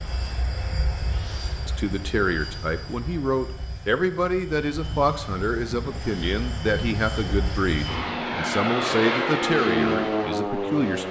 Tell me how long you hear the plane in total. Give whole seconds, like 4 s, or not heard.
11 s.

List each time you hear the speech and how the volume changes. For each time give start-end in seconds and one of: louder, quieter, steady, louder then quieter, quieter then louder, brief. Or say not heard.
1.6-11.0 steady.